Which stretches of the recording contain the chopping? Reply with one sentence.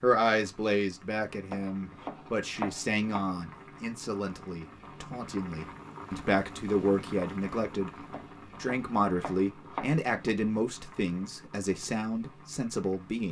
You can hear the chopping from 1.5 to 3.2 s and from 8.1 to 10.3 s.